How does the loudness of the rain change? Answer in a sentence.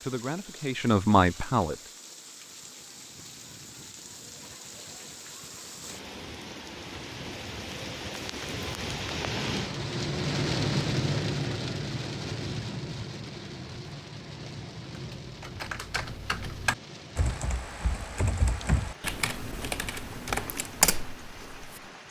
The volume of the rain goes up, then down.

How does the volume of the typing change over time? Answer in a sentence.
The loudness of the typing goes up.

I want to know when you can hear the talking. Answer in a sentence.
You can hear the talking from 0.0 to 1.8 s.